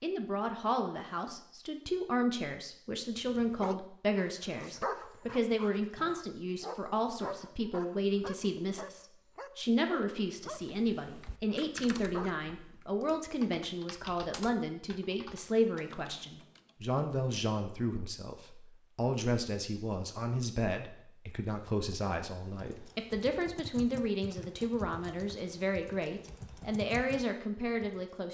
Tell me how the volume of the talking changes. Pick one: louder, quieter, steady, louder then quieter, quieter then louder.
steady.